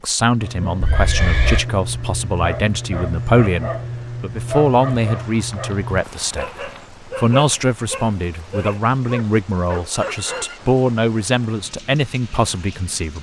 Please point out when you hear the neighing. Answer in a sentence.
You can hear the neighing from 0.8 to 1.6 s, from 4.8 to 6.8 s and from 9.9 to 10.6 s.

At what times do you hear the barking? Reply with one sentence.
The barking can be heard from 0.4 to 10.5 s.